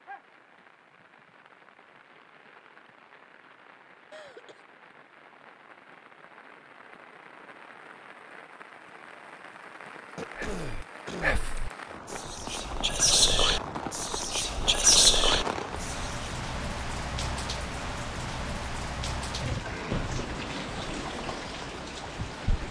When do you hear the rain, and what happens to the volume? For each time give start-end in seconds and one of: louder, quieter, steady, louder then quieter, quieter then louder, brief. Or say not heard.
0.0-22.6 louder.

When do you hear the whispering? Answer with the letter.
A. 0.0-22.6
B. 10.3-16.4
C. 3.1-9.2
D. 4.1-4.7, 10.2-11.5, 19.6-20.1
B.